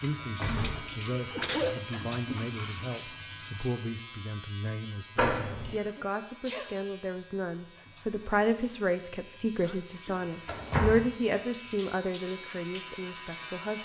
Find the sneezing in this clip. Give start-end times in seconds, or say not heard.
1.1-1.8, 6.0-6.8, 9.6-10.2.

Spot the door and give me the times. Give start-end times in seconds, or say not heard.
0.3-1.5, 5.2-5.8, 10.4-11.1.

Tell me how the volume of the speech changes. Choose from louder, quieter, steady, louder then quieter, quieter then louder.
louder.